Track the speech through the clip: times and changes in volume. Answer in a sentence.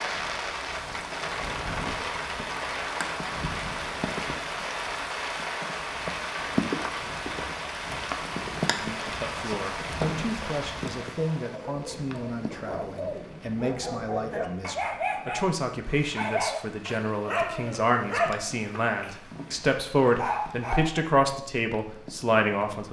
The speech can be heard from 8.8 to 22.8 s, getting louder.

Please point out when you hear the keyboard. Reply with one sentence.
The keyboard can't be heard in this clip.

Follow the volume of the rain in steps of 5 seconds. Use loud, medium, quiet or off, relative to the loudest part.
loud, loud, medium, quiet, quiet.